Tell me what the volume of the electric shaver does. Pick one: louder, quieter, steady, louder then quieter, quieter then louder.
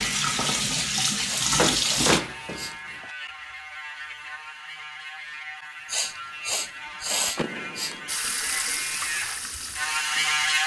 louder.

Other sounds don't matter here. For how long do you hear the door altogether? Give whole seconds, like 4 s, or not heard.
2 s.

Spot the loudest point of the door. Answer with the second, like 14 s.
2 s.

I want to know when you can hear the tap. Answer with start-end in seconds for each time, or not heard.
0.0-2.2, 8.1-10.6.